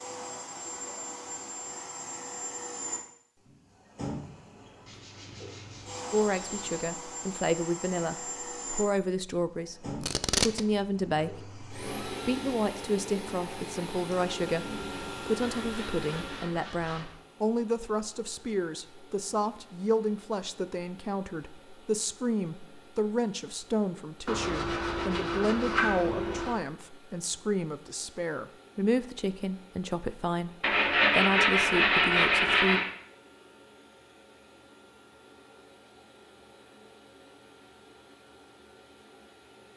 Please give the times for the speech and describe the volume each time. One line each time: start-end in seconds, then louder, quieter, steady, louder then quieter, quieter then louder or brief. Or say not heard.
6.1-32.8 steady.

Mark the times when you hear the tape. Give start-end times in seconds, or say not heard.
10.0-10.6.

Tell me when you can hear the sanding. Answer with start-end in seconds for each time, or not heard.
4.8-6.8, 14.6-17.1, 24.2-26.6, 30.6-32.9.